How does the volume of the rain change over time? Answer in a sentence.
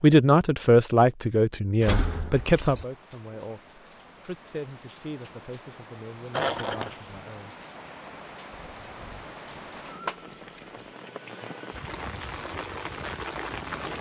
The loudness of the rain goes up.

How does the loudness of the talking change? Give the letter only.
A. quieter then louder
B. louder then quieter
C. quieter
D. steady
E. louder
C.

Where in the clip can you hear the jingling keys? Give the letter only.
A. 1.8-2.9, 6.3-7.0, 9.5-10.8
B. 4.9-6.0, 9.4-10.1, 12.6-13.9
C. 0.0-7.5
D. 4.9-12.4
A.